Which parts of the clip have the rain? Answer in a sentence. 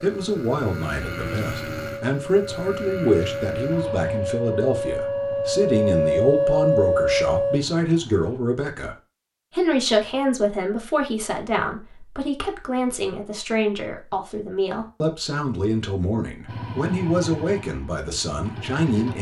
You can't hear the rain here.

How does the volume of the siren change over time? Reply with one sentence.
The volume of the siren goes up.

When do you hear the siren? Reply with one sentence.
The siren can be heard from 0.0 to 7.6 s.